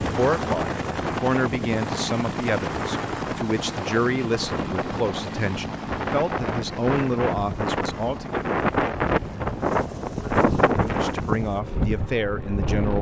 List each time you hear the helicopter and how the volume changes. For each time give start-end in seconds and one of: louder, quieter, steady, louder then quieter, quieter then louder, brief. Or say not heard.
0.0-12.9 quieter.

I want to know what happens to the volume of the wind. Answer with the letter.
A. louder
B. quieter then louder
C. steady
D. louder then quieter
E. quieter
A.